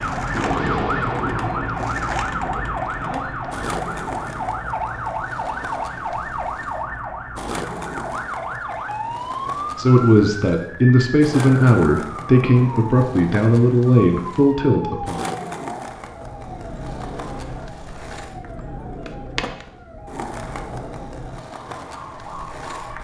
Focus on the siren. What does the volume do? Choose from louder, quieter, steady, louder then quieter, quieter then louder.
quieter.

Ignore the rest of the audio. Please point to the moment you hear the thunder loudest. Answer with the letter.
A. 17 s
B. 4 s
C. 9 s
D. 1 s
D.